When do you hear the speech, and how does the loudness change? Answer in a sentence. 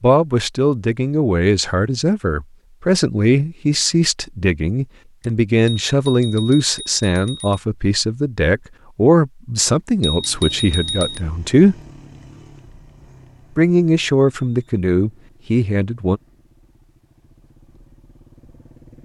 The speech can be heard from 0.0 to 11.8 s, at a steady volume; and briefly from 13.6 to 16.2 s.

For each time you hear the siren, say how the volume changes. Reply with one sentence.
The siren can't be heard in this clip.